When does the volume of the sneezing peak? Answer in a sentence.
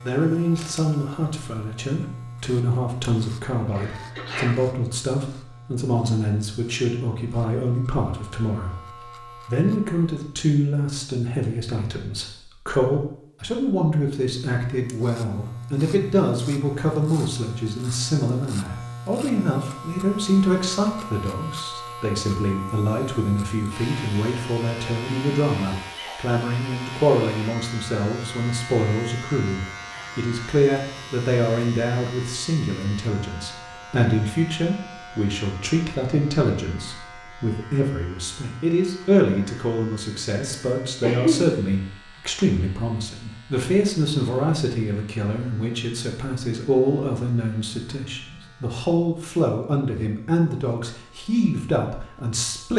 The volume of the sneezing peaks at 41 seconds.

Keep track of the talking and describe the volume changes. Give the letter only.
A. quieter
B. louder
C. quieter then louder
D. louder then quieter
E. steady
E.